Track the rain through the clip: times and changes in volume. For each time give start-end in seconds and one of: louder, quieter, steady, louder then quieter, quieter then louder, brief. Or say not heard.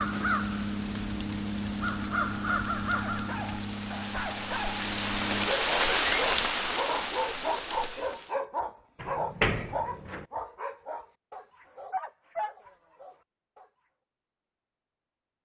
0.0-8.4 louder then quieter.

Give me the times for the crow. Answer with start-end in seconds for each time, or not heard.
0.0-5.5.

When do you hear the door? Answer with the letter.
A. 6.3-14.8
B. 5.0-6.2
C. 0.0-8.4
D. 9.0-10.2
D.